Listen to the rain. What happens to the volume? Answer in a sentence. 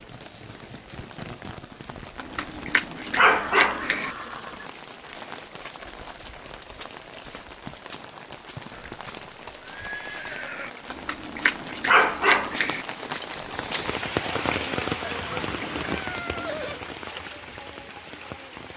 The loudness of the rain goes up.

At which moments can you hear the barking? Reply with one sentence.
You can hear the barking from 2.1 to 4.1 s and from 10.9 to 12.8 s.